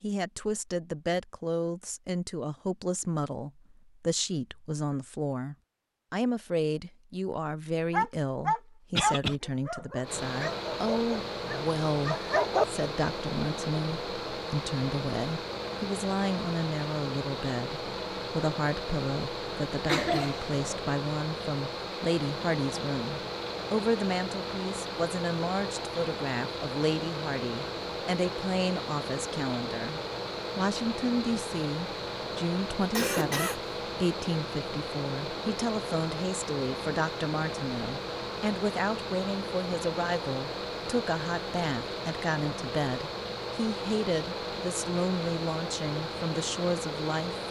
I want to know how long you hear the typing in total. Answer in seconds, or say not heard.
not heard.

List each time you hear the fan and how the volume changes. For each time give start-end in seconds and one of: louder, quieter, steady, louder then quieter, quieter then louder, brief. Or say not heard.
10.0-47.4 steady.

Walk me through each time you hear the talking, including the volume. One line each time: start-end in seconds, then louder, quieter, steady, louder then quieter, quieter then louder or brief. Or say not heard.
0.0-47.4 steady.